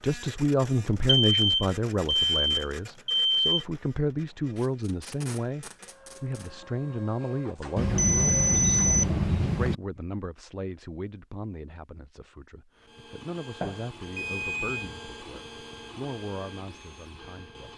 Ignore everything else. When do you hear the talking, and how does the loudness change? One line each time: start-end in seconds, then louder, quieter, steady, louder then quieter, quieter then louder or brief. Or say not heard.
0.0-17.7 quieter.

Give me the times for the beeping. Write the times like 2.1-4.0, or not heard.
1.1-3.6, 7.8-9.8, 13.6-14.9.